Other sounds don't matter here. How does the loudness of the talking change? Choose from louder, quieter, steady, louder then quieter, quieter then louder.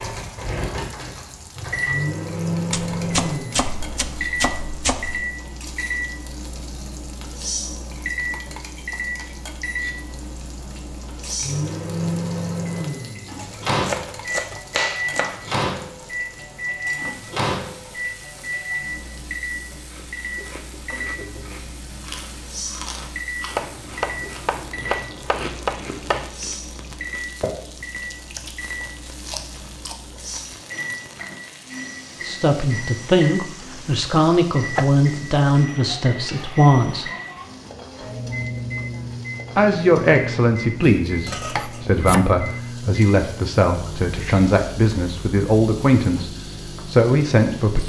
steady.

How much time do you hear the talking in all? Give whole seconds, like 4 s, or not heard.
13 s.